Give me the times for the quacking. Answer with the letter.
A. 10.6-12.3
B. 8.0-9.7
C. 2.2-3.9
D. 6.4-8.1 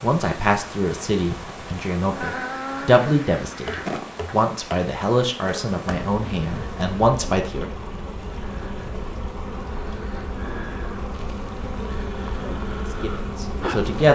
C.